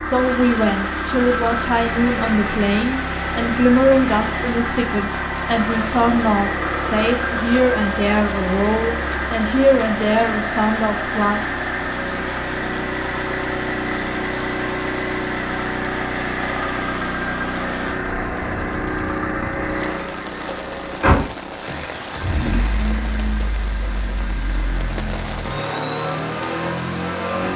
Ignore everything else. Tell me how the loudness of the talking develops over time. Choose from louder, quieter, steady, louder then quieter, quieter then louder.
steady.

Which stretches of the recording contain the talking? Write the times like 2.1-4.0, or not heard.
0.0-11.4.